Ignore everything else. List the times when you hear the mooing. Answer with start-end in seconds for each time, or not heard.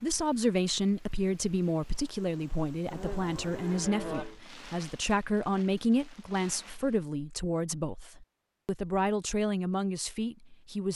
2.9-4.4.